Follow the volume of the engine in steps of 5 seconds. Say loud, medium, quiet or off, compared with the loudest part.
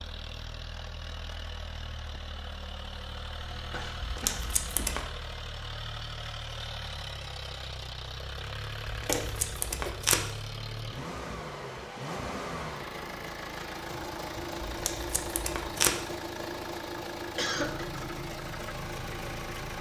medium, loud, loud, loud.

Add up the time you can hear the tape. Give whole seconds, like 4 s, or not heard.
4 s.